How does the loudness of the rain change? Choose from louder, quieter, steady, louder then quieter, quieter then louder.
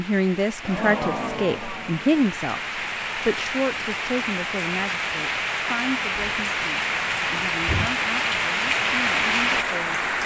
louder.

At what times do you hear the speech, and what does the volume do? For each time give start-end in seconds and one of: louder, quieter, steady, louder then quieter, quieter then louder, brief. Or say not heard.
0.0-10.0 quieter.